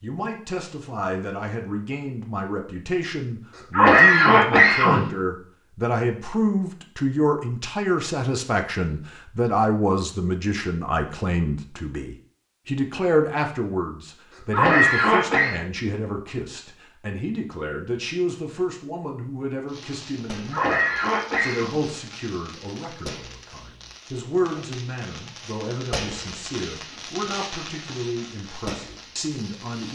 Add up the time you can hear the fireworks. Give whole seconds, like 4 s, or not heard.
10 s.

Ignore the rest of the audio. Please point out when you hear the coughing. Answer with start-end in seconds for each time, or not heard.
3.5-5.1, 14.3-15.6, 20.3-21.8.